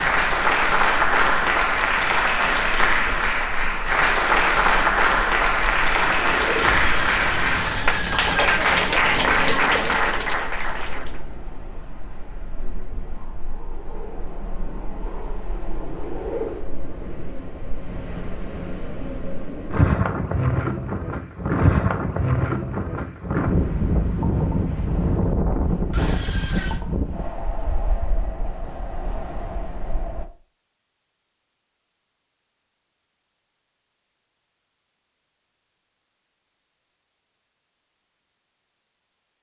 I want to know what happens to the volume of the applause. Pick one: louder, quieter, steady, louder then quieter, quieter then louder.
steady.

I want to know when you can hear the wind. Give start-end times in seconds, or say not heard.
0.2-30.2.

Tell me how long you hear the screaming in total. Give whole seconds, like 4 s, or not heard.
3 s.